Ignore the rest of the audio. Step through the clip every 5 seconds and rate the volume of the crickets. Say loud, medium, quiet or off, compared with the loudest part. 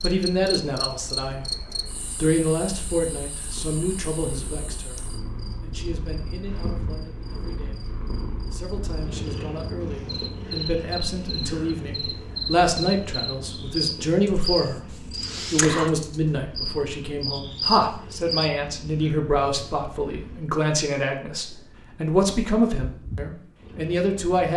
medium, quiet, loud, loud, off.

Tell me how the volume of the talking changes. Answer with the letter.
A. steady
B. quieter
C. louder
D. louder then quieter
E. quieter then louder
E.